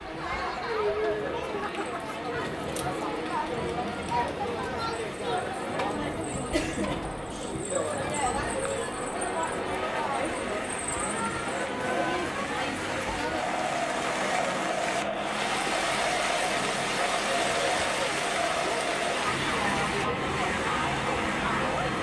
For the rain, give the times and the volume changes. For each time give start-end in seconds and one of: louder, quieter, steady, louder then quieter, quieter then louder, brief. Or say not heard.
0.0-21.9 louder.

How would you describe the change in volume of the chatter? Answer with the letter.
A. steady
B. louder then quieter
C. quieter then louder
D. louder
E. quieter
A.